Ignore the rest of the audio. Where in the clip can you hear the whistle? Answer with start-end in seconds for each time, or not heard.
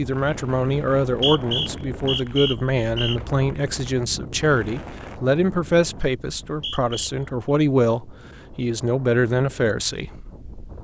1.1-3.2, 6.2-7.1.